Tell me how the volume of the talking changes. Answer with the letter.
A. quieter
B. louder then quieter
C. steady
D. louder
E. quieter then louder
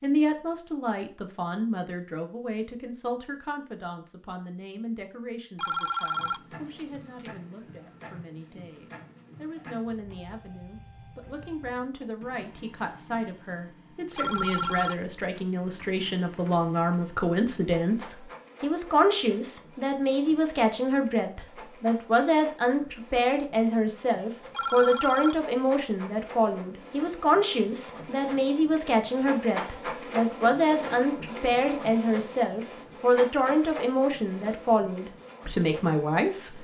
D.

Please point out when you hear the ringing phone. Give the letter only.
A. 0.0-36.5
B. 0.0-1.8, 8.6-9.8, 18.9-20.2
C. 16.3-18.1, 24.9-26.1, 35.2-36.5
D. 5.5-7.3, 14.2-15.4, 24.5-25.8
D.